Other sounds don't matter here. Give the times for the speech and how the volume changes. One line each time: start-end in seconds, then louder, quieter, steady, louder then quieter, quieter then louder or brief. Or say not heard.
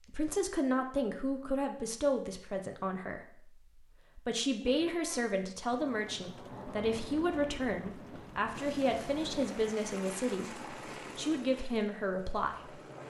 0.0-12.8 steady.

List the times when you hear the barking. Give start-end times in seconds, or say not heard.
not heard.